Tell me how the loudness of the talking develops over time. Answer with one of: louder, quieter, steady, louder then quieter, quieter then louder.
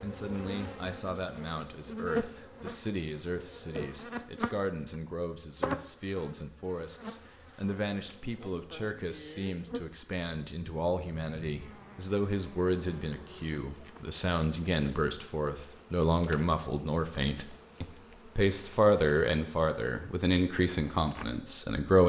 louder.